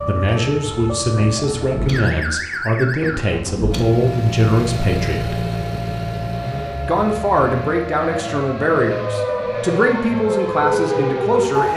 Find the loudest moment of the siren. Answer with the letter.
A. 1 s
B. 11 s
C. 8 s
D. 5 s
B.